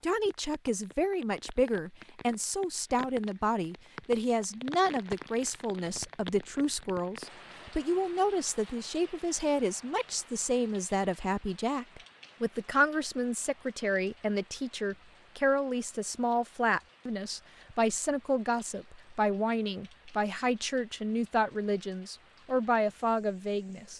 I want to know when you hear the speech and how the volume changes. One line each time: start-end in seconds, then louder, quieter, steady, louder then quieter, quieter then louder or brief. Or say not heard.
0.0-23.9 steady.